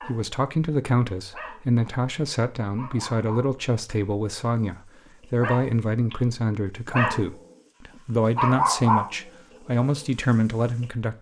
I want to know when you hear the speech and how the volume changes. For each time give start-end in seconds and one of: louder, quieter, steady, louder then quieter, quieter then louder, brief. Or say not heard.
0.1-11.1 steady.